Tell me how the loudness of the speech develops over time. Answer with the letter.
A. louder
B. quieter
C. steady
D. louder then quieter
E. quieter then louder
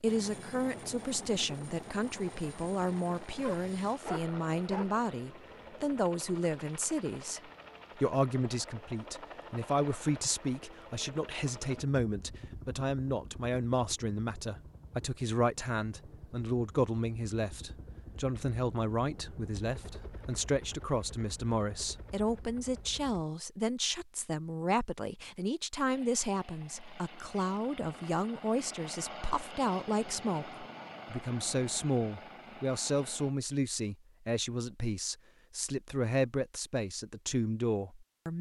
C.